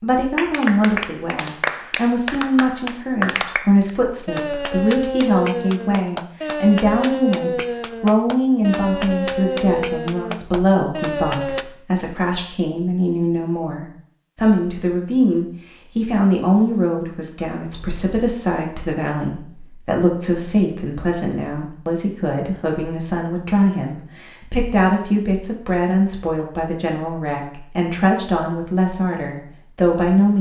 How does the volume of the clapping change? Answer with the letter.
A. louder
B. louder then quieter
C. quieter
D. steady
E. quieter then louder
D.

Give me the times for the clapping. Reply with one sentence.
You can hear the clapping from 0.3 to 11.7 s.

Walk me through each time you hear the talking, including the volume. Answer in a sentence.
The talking can be heard from 0.0 to 30.3 s, at a steady volume.